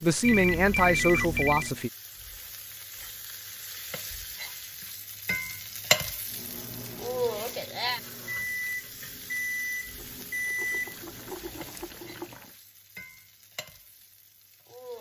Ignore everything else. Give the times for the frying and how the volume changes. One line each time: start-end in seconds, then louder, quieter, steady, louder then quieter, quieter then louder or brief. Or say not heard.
0.0-14.9 louder then quieter.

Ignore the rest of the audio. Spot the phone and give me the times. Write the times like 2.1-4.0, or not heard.
0.2-1.7.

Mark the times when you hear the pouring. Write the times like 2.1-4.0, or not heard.
9.9-12.6.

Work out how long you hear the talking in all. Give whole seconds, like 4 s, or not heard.
2 s.